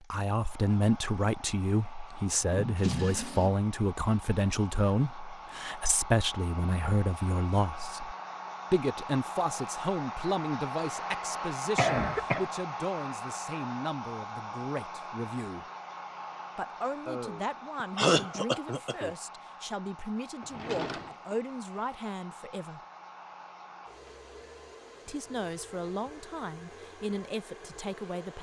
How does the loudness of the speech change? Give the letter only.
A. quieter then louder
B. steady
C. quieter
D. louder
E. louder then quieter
C.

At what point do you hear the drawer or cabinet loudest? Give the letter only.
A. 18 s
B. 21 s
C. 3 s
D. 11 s
C.